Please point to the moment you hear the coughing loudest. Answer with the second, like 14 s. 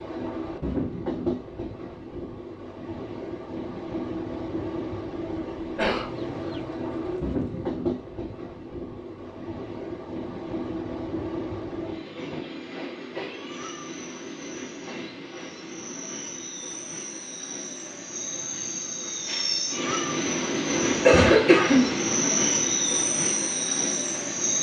21 s.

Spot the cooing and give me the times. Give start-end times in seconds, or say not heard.
6.0-7.7.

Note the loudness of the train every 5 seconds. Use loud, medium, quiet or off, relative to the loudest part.
medium, medium, medium, medium, loud.